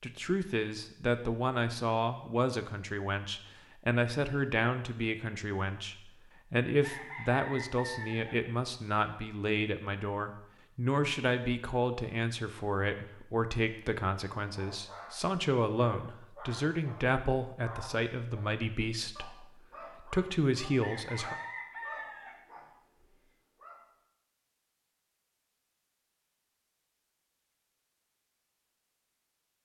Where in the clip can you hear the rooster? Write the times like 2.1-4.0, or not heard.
6.8-8.4, 20.8-22.4.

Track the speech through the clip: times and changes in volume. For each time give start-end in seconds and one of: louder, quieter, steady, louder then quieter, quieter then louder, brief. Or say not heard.
0.0-21.4 steady.